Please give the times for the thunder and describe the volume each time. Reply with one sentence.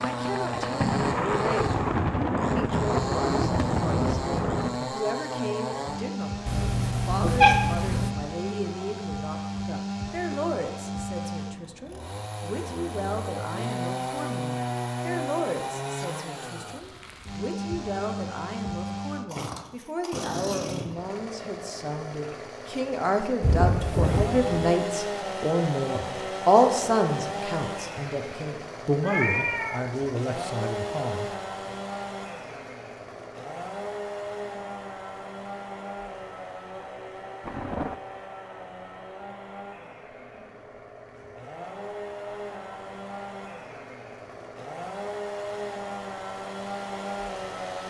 The thunder can be heard from 0.0 to 4.8 s, at a steady volume; briefly from 23.4 to 24.7 s; and briefly from 37.4 to 38.0 s.